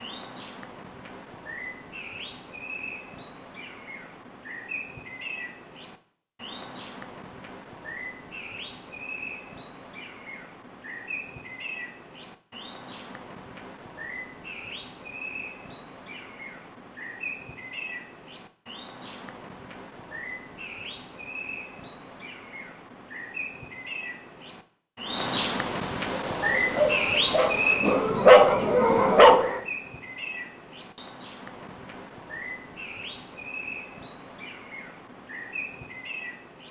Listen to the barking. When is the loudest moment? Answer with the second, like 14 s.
28 s.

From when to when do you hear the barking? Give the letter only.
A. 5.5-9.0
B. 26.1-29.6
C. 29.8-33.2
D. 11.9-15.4
B.